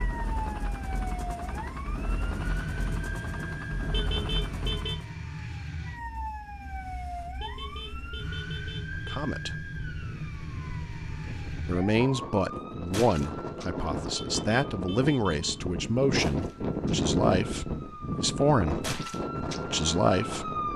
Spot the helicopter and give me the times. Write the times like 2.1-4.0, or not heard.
0.0-5.1.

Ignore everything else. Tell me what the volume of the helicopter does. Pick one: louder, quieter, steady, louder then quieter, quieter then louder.
steady.